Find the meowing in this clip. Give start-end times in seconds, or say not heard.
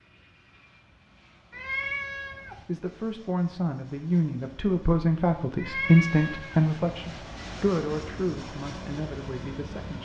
1.5-2.6, 5.5-6.7.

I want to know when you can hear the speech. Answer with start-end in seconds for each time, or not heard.
2.6-10.0.